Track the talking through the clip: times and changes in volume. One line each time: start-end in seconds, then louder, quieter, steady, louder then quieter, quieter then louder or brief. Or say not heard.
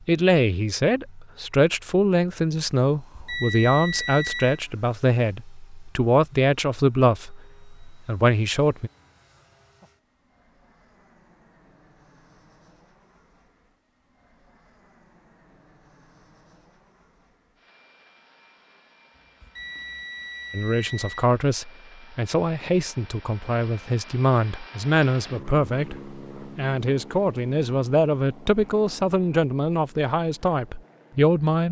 0.1-8.9 steady
20.5-31.6 steady.